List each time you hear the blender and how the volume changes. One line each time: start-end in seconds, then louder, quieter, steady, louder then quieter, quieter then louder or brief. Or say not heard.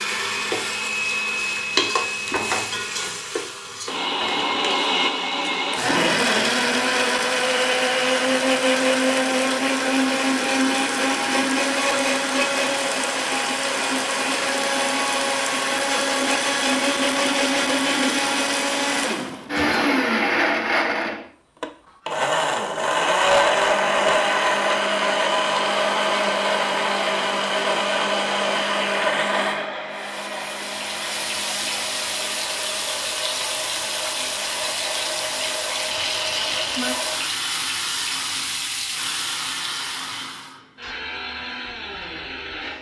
0.0-42.7 quieter.